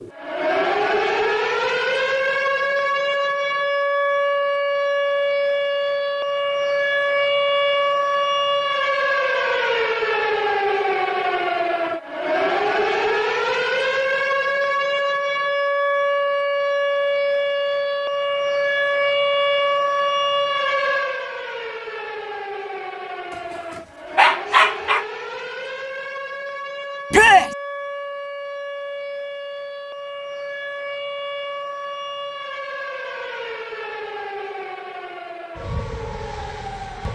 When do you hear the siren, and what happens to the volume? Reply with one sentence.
The siren can be heard from 0.0 to 37.1 s, getting quieter.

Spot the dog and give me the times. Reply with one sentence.
The dog can be heard from 24.1 to 25.1 s.